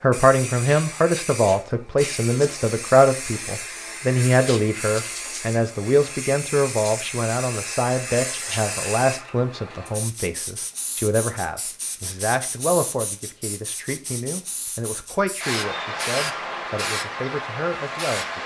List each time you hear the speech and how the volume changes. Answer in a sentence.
You can hear the speech from 0.0 to 18.4 s, getting quieter.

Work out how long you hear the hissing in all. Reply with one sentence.
The hissing can be heard for 18 seconds in total.